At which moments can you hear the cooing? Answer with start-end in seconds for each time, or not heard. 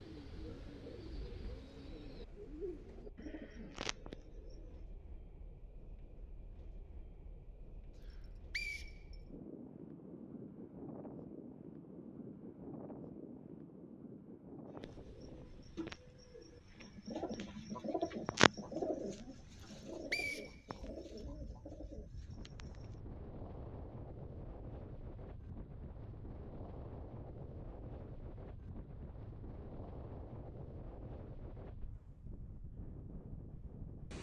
0.0-4.8, 14.7-22.9.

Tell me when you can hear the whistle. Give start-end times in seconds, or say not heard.
8.0-9.2, 19.6-21.2.